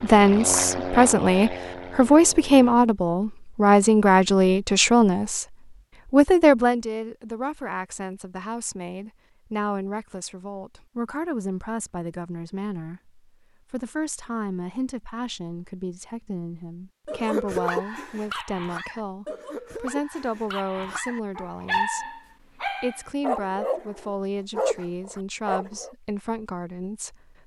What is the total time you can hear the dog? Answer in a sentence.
You can hear the dog for 9 seconds altogether.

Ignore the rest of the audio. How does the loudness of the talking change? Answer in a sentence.
The loudness of the talking goes down.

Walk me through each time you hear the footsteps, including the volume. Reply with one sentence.
The footsteps can't be heard in this clip.